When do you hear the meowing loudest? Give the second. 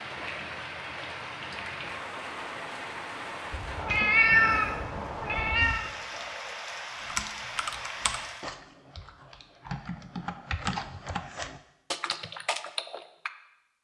4 s.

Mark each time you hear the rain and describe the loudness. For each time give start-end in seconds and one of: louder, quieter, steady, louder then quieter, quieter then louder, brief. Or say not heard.
0.0-8.5 steady.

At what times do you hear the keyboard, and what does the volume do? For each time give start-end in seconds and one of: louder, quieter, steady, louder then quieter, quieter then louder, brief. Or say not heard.
7.0-13.3 quieter then louder.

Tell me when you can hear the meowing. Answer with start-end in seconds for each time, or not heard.
3.5-5.9.